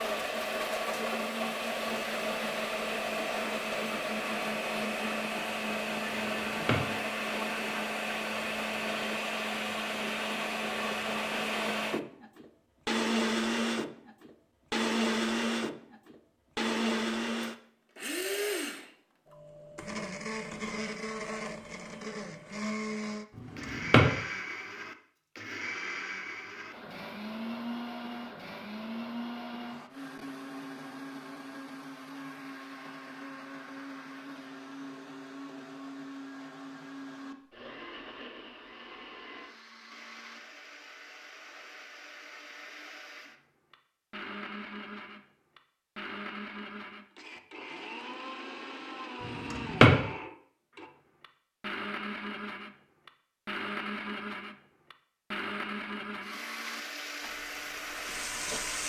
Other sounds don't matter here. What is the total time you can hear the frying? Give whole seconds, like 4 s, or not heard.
2 s.